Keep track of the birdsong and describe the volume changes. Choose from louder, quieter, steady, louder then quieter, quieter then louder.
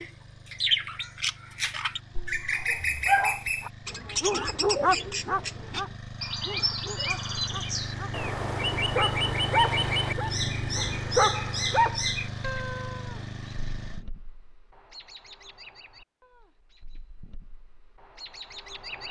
quieter.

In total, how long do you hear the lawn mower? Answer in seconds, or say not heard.
14 s.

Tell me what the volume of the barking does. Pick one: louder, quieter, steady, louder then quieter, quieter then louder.
quieter then louder.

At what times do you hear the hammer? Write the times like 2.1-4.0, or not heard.
not heard.